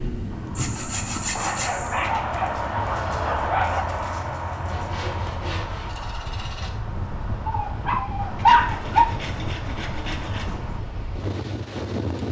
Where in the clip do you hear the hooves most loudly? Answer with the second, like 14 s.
3 s.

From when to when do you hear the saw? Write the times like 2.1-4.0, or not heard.
0.6-2.0, 4.7-6.7, 8.6-10.5.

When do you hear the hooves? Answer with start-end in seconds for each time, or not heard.
0.3-10.8.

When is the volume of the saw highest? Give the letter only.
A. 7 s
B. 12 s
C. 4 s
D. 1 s
D.